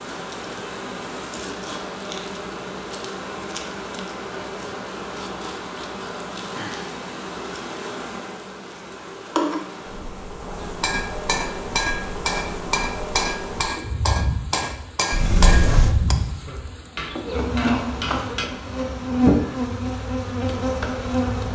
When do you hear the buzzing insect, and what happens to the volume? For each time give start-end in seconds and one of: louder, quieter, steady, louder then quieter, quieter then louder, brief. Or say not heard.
0.0-21.5 louder.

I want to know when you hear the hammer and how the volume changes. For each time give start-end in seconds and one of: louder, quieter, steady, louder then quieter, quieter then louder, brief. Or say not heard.
10.8-18.5 quieter.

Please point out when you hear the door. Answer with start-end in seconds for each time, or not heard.
15.1-15.9.